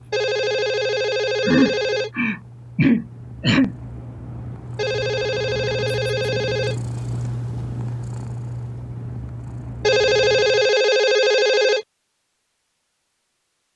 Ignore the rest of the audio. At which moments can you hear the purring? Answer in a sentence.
You can hear the purring from 0.0 to 10.8 s.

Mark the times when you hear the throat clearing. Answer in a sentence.
You can hear the throat clearing from 1.4 to 3.8 s.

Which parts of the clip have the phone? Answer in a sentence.
The phone can be heard from 0.1 to 2.1 s, from 4.8 to 6.8 s and from 9.8 to 11.8 s.